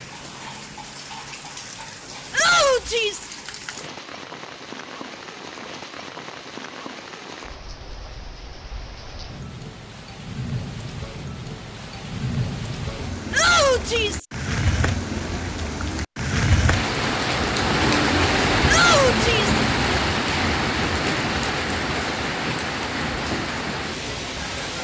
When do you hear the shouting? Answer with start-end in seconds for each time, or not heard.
2.3-3.2, 13.3-14.2, 18.6-19.6.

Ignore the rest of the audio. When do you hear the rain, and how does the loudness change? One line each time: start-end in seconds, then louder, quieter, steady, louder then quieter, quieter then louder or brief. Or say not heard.
0.0-24.7 louder.